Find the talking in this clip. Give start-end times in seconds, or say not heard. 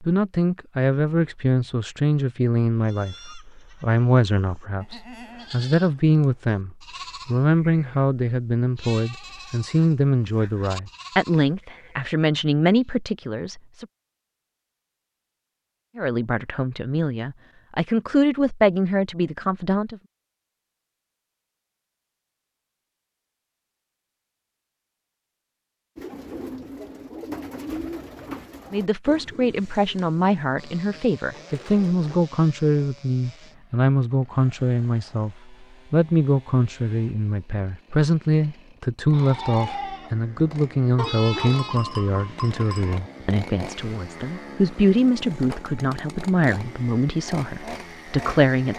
0.0-13.8, 15.9-20.0, 28.7-48.7.